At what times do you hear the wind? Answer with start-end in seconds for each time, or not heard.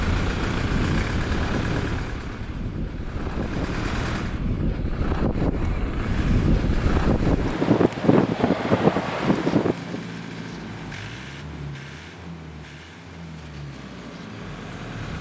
0.0-10.0.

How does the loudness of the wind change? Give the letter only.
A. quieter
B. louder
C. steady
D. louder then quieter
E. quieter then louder
B.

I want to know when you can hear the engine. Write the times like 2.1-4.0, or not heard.
0.0-4.4, 6.0-15.1.